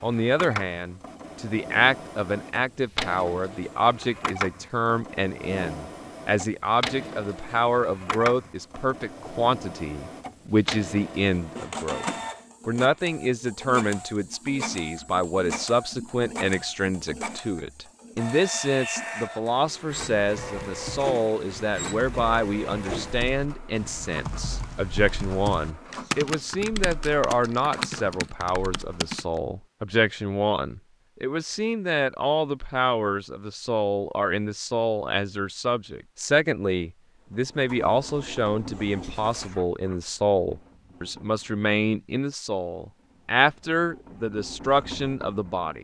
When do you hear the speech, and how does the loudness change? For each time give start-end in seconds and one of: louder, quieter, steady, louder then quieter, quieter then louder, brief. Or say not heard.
0.0-12.1 steady
12.7-45.7 steady.